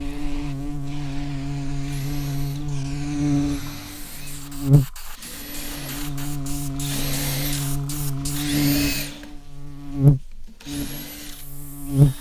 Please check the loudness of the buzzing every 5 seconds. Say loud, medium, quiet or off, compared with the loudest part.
medium, medium, loud.